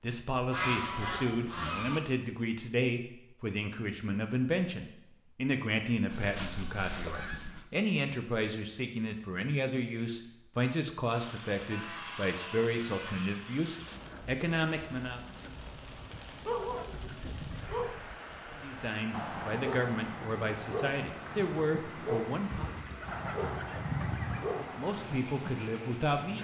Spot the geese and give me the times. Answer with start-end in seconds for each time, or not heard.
0.5-2.0, 6.1-7.7, 11.7-13.3, 15.9-17.9, 22.4-24.4.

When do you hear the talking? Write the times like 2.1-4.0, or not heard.
0.0-15.2, 18.6-22.7, 24.8-26.3.